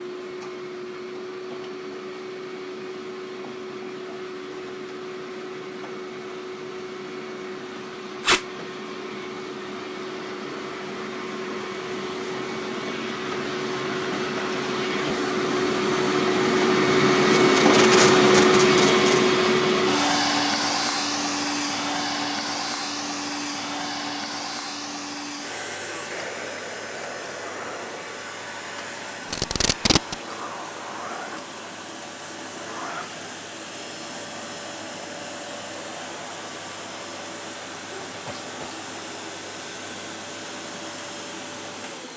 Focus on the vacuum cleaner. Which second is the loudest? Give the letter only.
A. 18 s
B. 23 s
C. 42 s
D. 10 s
A.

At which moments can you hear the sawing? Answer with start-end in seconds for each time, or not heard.
not heard.